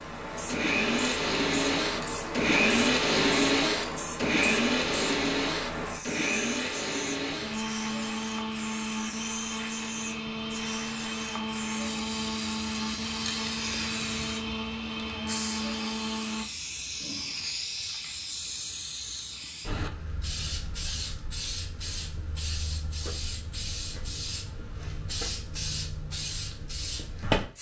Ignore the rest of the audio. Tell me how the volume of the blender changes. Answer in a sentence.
The volume of the blender goes down.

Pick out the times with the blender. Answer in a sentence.
The blender can be heard from 0.5 to 16.4 s.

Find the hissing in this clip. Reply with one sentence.
You can hear the hissing from 0.0 to 27.5 s.